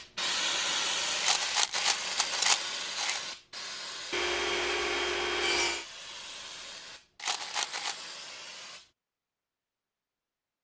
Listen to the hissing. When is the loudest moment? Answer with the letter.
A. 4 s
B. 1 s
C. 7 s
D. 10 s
B.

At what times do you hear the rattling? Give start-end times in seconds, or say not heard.
1.2-3.2, 7.2-8.0.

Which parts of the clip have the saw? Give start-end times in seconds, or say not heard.
4.1-5.8.